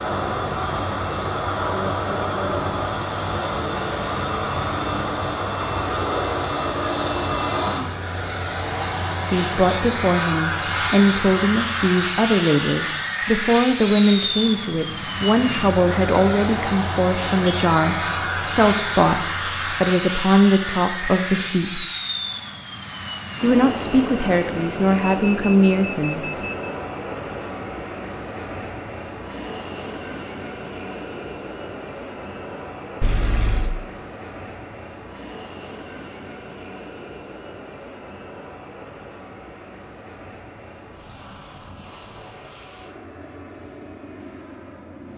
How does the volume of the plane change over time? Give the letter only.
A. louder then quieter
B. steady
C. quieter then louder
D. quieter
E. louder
D.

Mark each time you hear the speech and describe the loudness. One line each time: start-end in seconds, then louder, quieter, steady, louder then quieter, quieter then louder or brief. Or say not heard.
9.3-21.9 steady
23.4-26.2 brief.